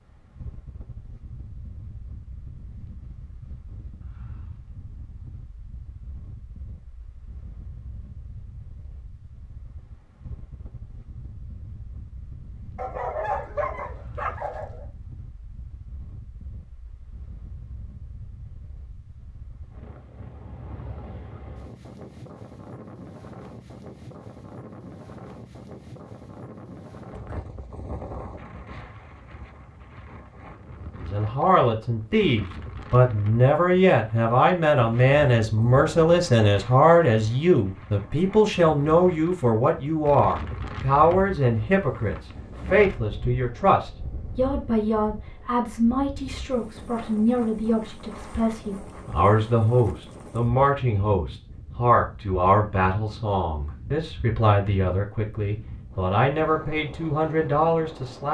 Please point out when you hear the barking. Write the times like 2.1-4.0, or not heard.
12.8-14.8.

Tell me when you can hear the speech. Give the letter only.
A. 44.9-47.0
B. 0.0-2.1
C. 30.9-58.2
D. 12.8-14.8
C.